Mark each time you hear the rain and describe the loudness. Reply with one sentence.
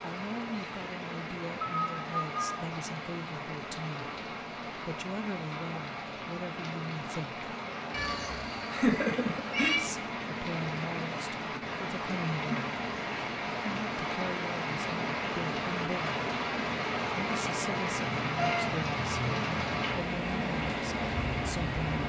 You can hear the rain from 0.0 to 22.0 s, getting louder.